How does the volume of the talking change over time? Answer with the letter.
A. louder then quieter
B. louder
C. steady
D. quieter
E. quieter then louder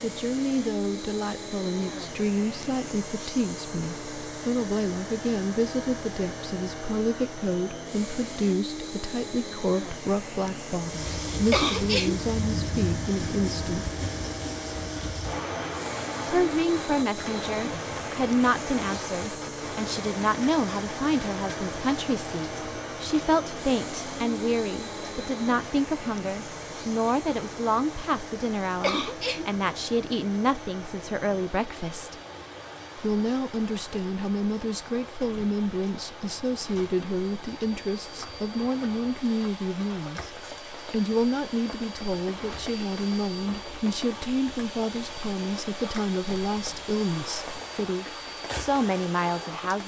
C.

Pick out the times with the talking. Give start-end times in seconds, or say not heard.
0.0-13.9, 16.3-32.1, 33.0-40.3, 40.9-49.8.